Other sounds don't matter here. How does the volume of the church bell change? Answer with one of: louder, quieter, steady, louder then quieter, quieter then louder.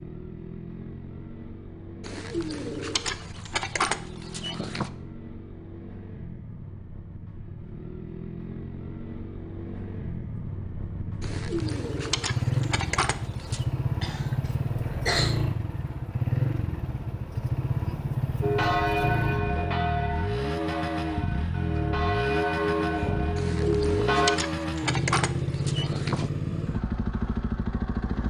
quieter then louder.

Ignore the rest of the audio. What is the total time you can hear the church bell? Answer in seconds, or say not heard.
6 s.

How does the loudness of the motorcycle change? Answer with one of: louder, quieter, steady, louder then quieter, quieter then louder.
louder.